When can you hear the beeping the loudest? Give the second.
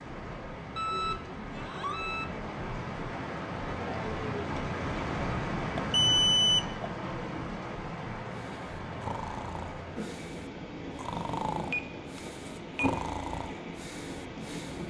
6 s.